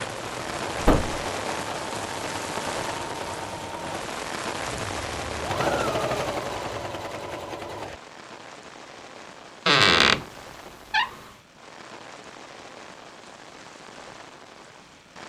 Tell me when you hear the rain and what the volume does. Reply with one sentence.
The rain can be heard from 0.0 to 15.2 s, getting quieter.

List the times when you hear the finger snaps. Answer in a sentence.
You can't hear the finger snaps here.